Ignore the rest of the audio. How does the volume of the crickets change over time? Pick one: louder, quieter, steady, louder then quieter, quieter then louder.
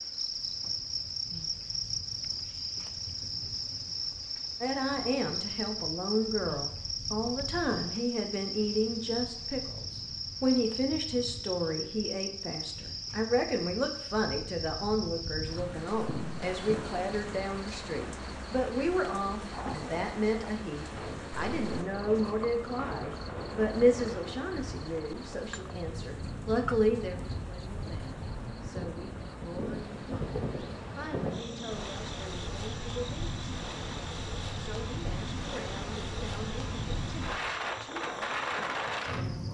quieter.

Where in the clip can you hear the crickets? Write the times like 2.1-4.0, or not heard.
0.0-39.5.